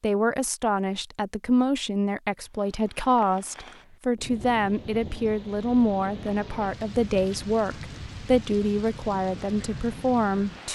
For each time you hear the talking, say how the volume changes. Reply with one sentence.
You can hear the talking from 0.0 to 10.7 s, at a steady volume.